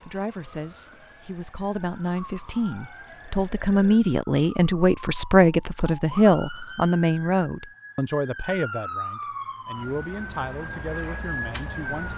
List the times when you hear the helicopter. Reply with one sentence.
You can't hear the helicopter here.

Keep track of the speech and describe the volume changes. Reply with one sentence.
The loudness of the speech goes up, then down.